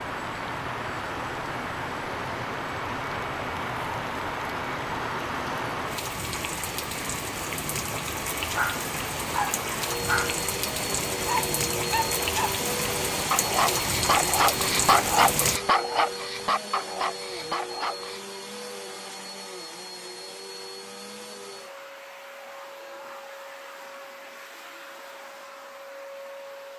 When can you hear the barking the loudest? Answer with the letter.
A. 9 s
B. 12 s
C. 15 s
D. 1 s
C.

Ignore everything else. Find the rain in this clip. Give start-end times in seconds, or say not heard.
0.0-15.6.